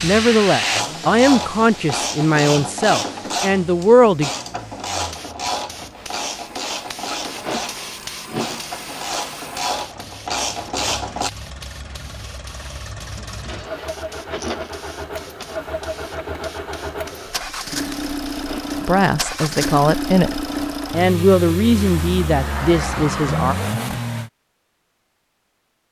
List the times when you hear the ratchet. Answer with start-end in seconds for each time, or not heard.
0.6-11.3.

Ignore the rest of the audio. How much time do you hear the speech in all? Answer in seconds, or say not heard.
9 s.